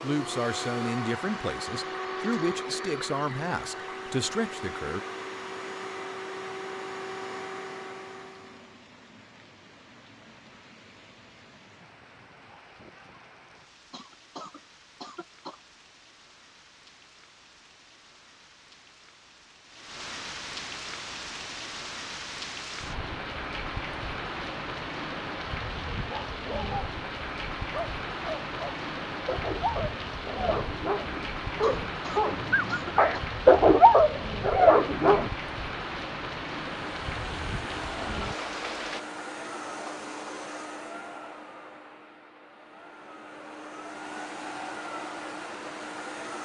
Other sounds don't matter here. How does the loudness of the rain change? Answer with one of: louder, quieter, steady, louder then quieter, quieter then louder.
louder.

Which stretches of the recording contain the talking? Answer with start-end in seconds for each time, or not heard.
0.0-5.0.